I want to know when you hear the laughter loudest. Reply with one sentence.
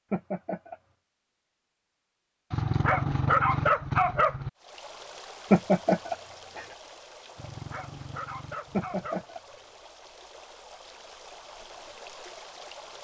The loudest moment of the laughter is at 6 seconds.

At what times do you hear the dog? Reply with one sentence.
The dog can be heard from 2.5 to 4.5 s and from 7.3 to 9.2 s.